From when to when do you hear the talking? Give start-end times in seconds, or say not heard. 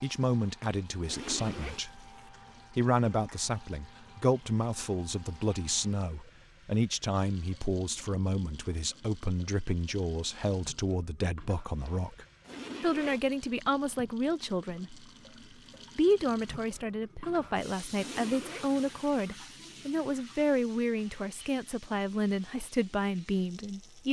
0.0-2.0, 2.7-15.1, 15.9-24.0.